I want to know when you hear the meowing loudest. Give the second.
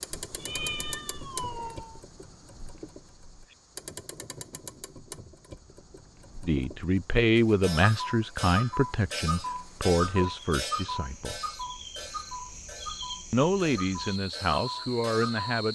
1 s.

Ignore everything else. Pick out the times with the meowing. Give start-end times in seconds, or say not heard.
0.2-2.0.